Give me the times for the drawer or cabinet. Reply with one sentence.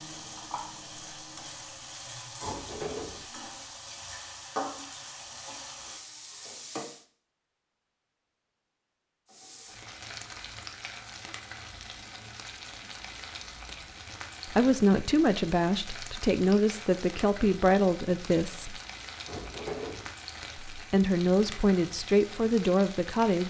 The drawer or cabinet can be heard from 2.4 to 3.2 s and from 19.2 to 20.1 s.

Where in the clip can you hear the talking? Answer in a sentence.
You can hear the talking from 14.4 to 18.8 s and from 20.7 to 23.4 s.